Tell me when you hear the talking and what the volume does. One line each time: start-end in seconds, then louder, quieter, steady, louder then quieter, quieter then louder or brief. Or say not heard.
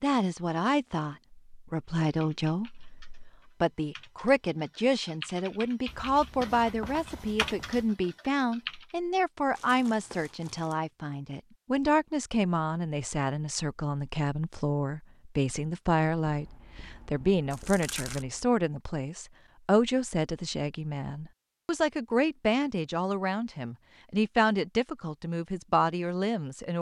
0.0-26.7 steady.